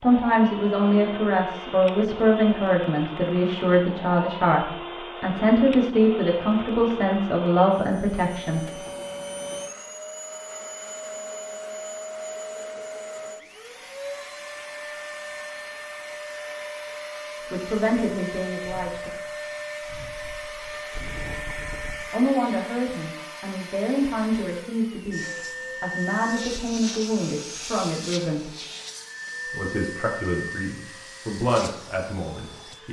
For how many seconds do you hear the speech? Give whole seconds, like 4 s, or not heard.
20 s.